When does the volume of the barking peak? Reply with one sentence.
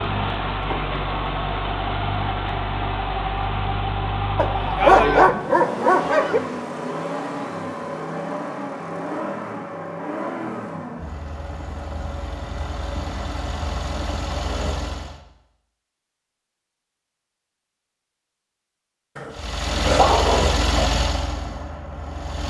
The volume of the barking peaks at 5 seconds.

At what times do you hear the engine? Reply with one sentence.
You can hear the engine from 0.0 to 15.2 s and from 19.3 to 22.4 s.